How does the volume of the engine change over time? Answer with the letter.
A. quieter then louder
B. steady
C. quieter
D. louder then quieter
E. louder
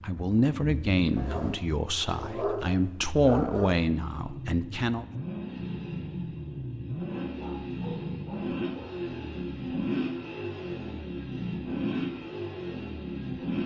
E.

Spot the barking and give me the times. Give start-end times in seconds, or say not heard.
1.1-3.8, 7.2-9.1.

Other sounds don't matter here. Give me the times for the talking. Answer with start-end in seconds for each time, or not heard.
0.0-5.0.